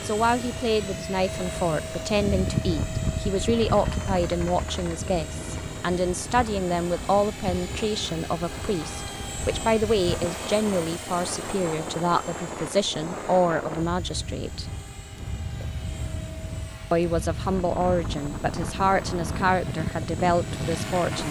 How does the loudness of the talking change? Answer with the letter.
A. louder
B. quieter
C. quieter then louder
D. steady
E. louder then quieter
D.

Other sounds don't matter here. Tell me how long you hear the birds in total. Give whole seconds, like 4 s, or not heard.
not heard.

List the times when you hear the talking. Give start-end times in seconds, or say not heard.
0.0-14.7, 16.9-21.2.